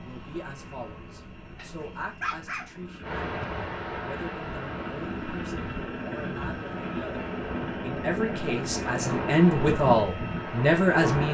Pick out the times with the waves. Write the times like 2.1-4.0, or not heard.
3.0-11.2.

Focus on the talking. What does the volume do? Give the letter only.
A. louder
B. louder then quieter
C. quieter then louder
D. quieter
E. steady
A.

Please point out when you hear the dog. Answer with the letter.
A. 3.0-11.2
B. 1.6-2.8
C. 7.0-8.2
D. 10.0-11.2
B.